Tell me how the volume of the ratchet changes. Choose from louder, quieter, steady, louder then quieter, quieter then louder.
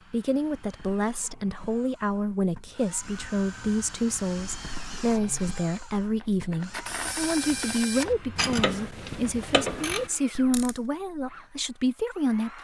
louder.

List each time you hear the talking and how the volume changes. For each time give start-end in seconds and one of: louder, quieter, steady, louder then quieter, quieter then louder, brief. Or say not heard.
0.1-12.5 steady.